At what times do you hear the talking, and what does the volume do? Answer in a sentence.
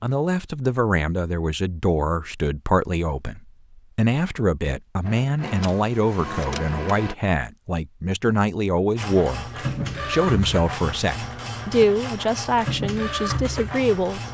The talking can be heard from 0.0 to 14.2 s, at a steady volume.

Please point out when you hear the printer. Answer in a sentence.
You can hear the printer from 5.0 to 7.2 s and from 8.9 to 14.2 s.